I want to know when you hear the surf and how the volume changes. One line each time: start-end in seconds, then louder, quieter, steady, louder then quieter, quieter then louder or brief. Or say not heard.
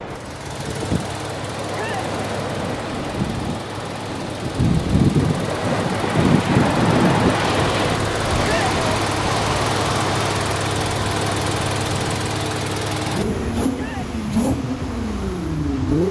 0.0-16.0 louder then quieter.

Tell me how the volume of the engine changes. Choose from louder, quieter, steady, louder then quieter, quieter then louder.
louder.